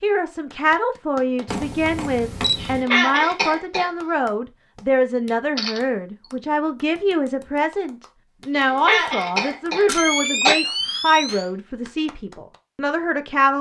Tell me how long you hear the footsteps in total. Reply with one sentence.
The footsteps can't be heard in this clip.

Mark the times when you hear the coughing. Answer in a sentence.
You can hear the coughing from 2.5 to 3.9 s and from 8.6 to 10.6 s.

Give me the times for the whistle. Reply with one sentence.
You can't hear the whistle here.